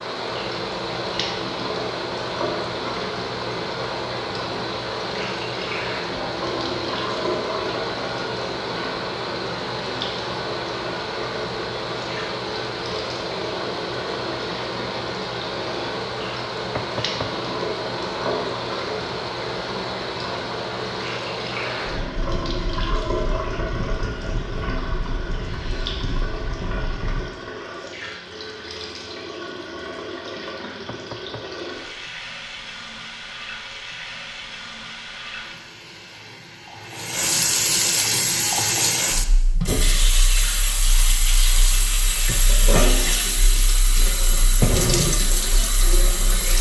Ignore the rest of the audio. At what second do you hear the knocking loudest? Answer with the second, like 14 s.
17 s.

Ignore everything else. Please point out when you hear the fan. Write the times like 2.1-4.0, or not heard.
0.0-27.2.